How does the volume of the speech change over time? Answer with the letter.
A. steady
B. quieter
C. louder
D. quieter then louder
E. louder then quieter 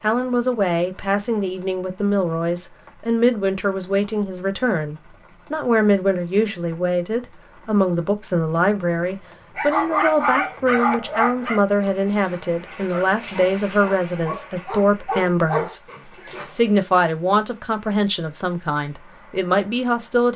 A.